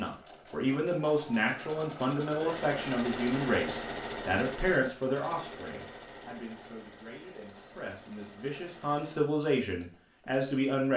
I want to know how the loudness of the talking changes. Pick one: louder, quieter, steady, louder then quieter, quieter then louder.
quieter then louder.